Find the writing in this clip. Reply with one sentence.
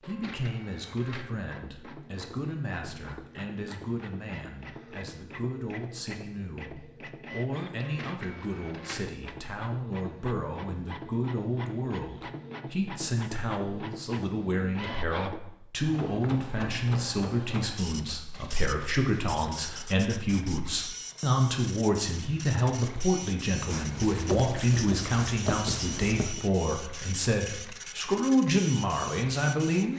You can hear the writing from 23.7 to 26.4 s.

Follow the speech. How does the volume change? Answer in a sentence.
The loudness of the speech goes up.